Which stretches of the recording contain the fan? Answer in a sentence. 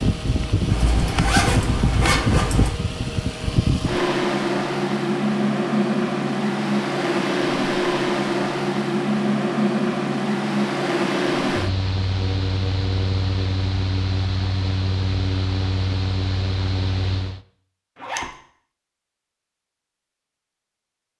The fan can be heard from 0.0 to 17.4 s.